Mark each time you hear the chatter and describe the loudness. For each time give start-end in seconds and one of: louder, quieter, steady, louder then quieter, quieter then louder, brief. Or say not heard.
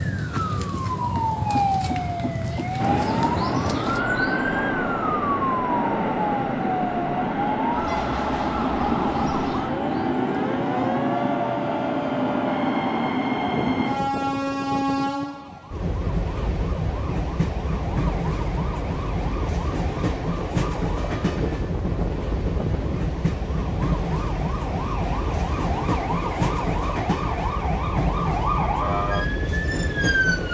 not heard.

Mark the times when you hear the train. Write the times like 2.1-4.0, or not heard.
2.8-30.4.